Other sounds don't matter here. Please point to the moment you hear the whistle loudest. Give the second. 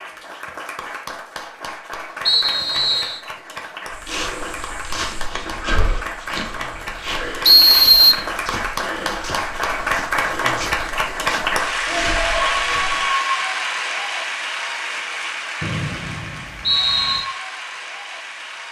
8 s.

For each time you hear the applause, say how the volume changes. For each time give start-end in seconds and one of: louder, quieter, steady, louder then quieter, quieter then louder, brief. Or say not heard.
0.0-18.6 louder then quieter.